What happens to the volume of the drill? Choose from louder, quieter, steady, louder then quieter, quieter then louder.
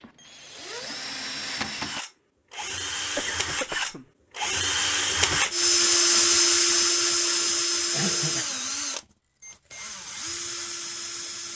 louder then quieter.